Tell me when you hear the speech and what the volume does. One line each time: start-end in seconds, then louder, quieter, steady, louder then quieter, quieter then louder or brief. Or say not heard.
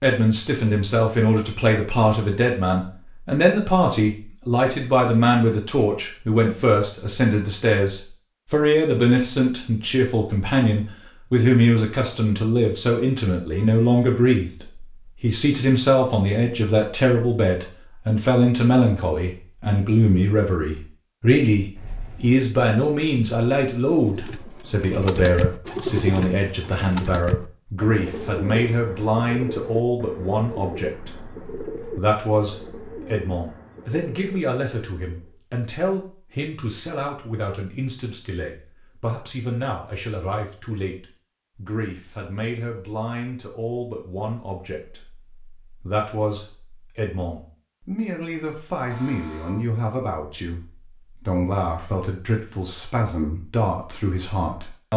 0.0-54.9 quieter.